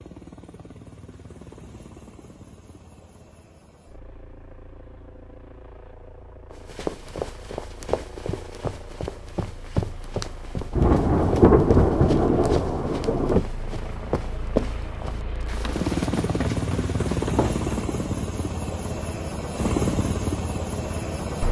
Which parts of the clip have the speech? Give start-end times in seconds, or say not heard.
not heard.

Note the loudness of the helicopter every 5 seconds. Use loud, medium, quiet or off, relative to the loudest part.
quiet, quiet, quiet, loud, loud.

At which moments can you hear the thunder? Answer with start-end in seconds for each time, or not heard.
10.7-13.4.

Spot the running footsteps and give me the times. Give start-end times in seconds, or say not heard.
6.5-17.7.